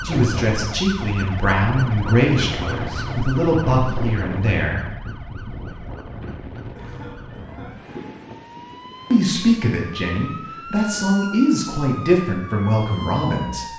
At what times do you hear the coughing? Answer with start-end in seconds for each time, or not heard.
6.8-7.8.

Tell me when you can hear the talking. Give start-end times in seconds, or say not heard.
0.0-4.9, 9.1-13.7.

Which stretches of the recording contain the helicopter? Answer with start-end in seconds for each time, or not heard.
not heard.